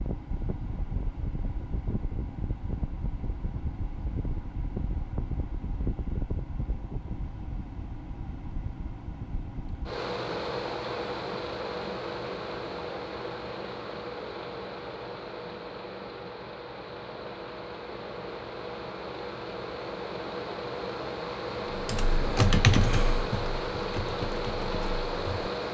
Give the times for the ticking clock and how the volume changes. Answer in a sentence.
You can't hear the ticking clock here.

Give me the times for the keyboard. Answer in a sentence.
You can hear the keyboard from 21.7 to 25.5 s.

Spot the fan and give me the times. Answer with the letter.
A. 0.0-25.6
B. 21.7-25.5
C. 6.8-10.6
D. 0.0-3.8
A.